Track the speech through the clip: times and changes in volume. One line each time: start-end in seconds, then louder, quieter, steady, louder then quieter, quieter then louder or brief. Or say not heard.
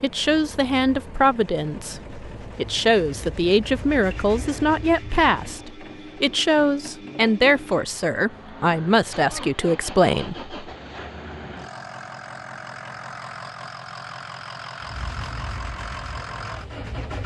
0.0-10.5 steady.